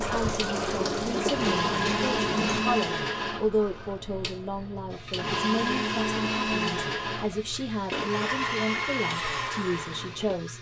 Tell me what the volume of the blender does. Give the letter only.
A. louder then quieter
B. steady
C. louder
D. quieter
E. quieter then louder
B.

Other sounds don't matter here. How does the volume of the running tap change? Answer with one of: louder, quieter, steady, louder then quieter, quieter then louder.
quieter.